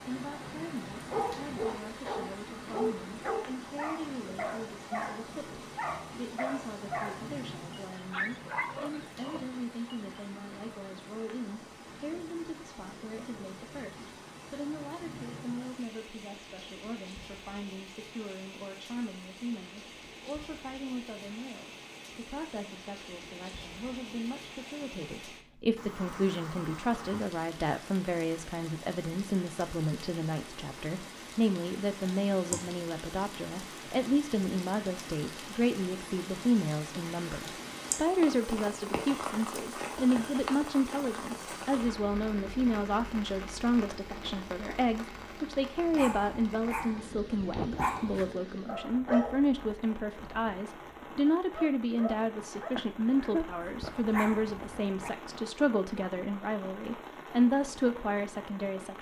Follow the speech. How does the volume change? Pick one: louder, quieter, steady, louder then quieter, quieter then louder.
louder.